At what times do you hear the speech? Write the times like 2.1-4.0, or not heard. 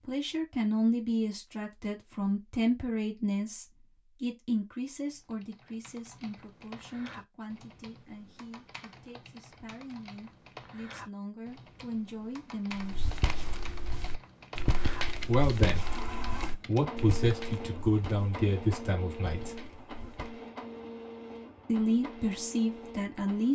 0.1-13.1, 15.2-15.9, 16.6-19.6, 21.6-23.5.